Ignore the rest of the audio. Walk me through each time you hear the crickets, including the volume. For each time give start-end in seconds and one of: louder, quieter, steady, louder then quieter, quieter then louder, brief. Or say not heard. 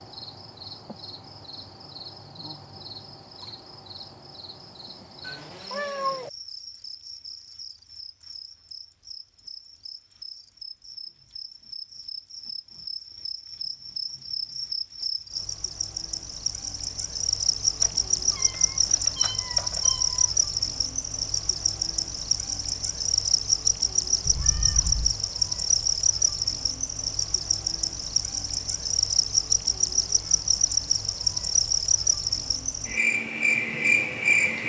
0.0-34.6 louder.